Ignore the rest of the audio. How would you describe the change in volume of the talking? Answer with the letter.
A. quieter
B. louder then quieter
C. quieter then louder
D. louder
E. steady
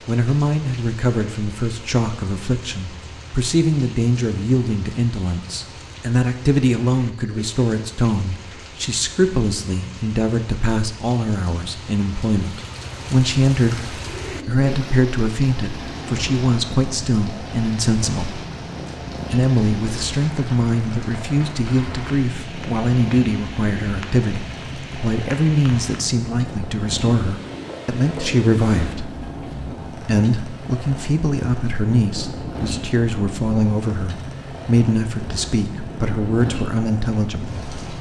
E.